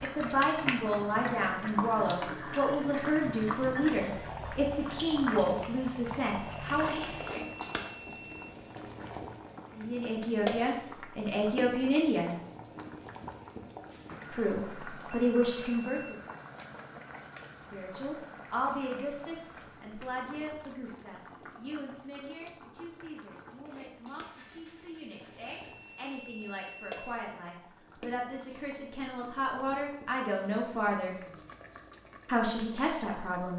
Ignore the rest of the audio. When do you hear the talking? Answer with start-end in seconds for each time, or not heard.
0.0-7.1, 9.8-12.3, 14.3-16.1, 17.6-31.1, 32.2-33.5.